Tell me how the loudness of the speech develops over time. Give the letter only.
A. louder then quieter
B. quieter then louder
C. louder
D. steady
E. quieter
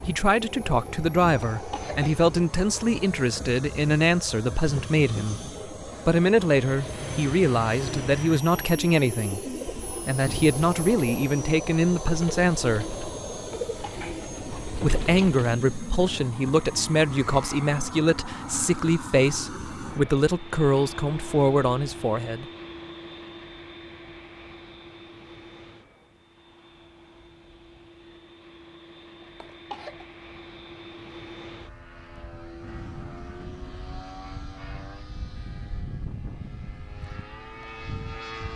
D.